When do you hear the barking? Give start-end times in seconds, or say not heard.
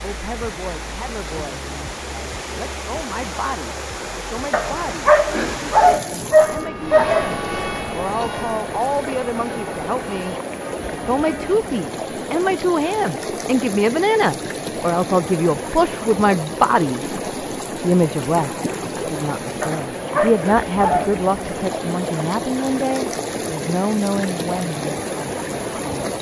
4.5-7.3, 19.6-21.2.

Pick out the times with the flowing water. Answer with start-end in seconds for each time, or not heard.
0.0-26.1.